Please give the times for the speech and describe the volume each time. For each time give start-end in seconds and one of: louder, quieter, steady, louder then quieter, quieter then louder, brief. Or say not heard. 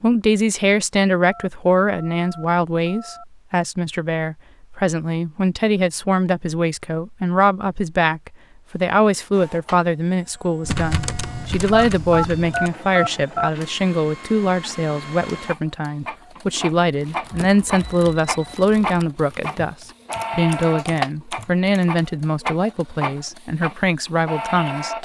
0.0-25.0 steady.